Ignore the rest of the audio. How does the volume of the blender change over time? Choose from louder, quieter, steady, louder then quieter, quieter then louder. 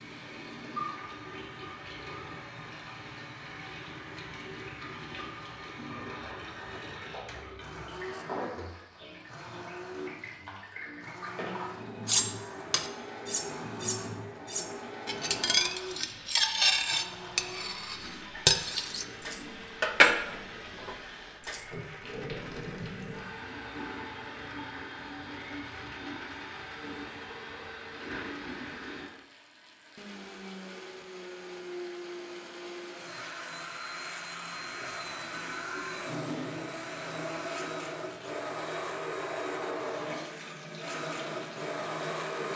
louder.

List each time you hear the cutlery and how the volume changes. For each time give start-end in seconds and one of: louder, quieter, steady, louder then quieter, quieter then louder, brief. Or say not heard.
12.1-21.6 louder.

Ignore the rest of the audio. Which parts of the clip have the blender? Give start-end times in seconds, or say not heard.
6.5-42.5.